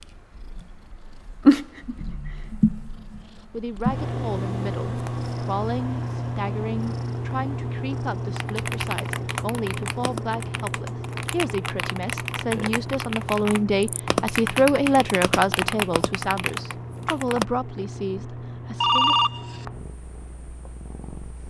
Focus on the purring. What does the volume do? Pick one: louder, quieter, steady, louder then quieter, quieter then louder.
quieter.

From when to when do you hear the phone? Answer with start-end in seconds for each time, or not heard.
18.8-19.6.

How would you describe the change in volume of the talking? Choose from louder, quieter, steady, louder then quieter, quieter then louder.
louder then quieter.